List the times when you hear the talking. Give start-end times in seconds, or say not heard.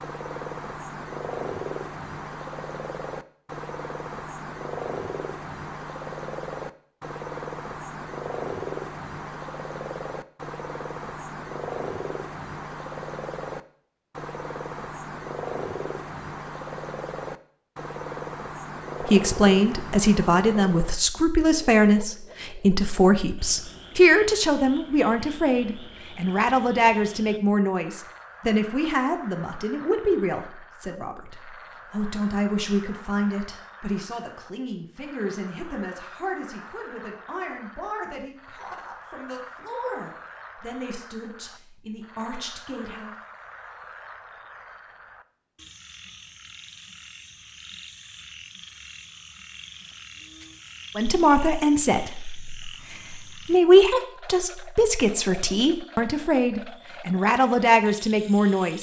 19.0-43.1, 51.0-58.7.